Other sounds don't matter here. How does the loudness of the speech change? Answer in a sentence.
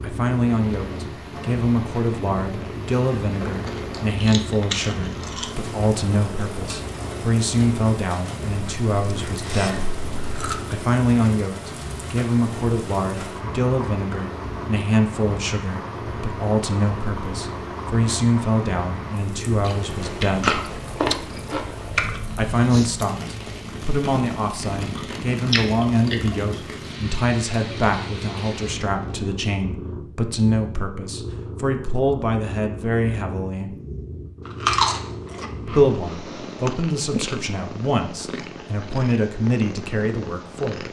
The volume of the speech stays about the same.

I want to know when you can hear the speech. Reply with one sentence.
You can hear the speech from 0.0 to 9.9 s, from 10.7 to 20.6 s, from 22.4 to 33.8 s and from 35.6 to 40.8 s.